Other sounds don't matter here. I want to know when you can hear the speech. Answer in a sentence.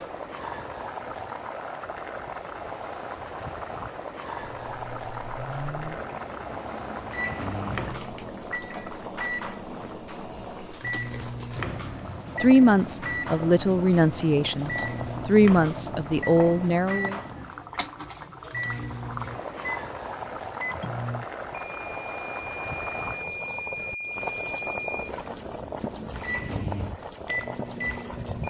The speech can be heard from 12.4 to 17.2 s.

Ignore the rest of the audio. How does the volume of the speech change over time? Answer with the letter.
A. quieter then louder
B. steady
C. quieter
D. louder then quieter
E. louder
A.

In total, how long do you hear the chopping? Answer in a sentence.
You can't hear the chopping here.